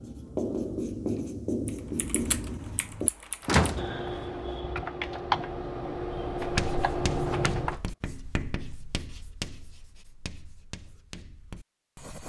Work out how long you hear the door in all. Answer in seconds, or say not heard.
2 s.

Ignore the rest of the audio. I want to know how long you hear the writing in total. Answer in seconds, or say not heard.
9 s.